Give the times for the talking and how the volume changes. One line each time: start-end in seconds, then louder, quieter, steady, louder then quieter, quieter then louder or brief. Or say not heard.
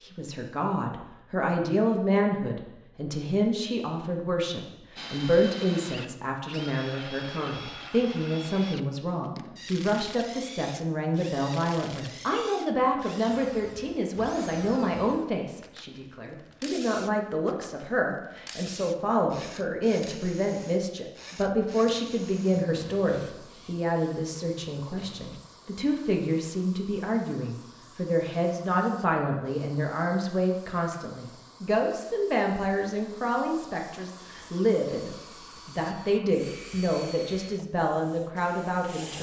0.0-39.1 steady.